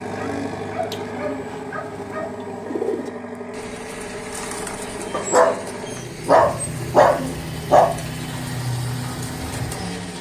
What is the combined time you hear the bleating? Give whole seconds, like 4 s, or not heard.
not heard.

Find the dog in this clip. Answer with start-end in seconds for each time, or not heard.
0.1-2.3, 5.1-7.9.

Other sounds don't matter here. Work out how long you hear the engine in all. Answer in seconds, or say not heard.
10 s.